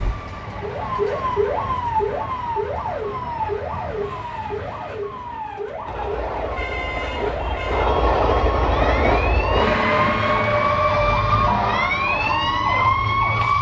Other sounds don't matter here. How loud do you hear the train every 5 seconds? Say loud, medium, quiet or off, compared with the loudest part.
quiet, loud, loud.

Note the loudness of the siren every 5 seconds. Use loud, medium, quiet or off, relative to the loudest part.
medium, medium, loud.